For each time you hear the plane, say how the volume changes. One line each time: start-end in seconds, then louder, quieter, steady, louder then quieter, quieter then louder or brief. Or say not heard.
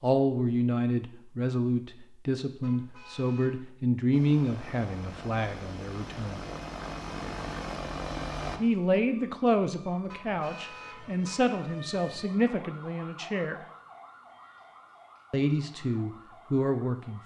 4.1-8.6 louder.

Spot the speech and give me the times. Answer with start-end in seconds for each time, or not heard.
0.0-6.4, 8.6-13.6, 15.3-17.2.